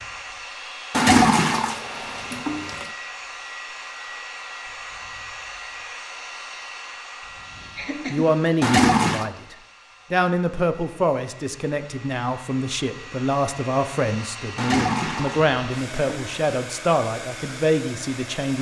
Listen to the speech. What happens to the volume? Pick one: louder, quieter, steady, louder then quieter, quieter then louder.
steady.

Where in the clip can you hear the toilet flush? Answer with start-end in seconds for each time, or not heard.
0.9-2.9, 8.6-9.3, 14.6-16.5.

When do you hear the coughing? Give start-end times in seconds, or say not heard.
7.8-8.2.